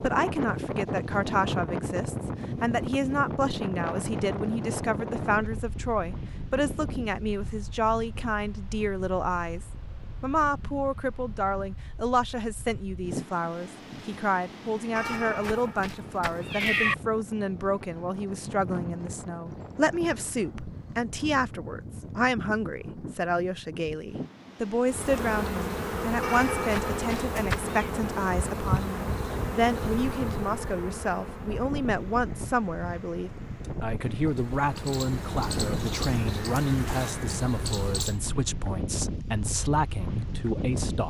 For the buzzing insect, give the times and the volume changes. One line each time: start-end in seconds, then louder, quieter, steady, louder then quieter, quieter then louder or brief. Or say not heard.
24.9-38.2 quieter then louder.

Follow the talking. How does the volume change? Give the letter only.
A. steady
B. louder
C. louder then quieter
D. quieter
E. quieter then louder
A.